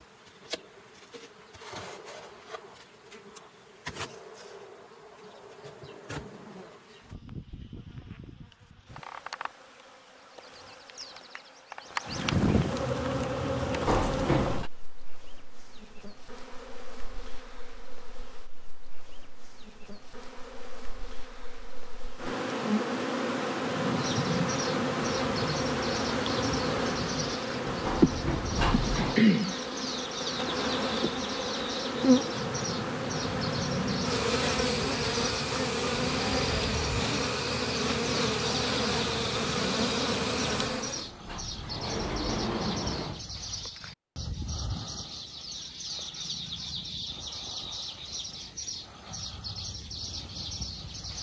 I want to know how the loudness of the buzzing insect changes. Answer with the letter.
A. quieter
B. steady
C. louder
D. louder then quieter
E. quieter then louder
C.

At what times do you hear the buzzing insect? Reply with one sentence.
You can hear the buzzing insect from 0.0 to 41.1 s.